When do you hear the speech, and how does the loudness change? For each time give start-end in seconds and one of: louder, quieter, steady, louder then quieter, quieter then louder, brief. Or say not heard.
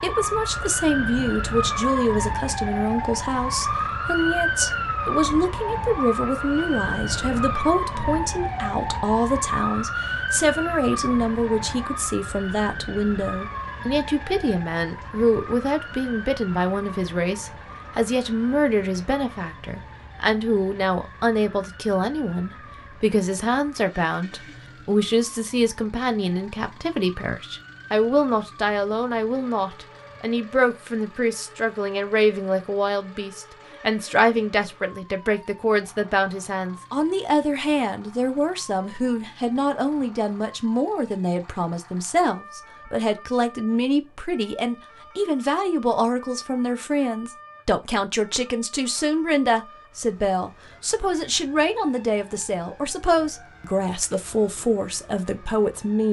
0.0-56.0 steady.